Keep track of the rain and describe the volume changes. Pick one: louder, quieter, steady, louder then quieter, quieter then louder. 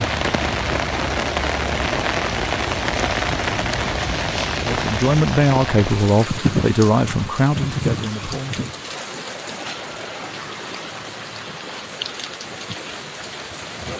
quieter.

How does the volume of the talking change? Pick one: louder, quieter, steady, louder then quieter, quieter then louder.
quieter.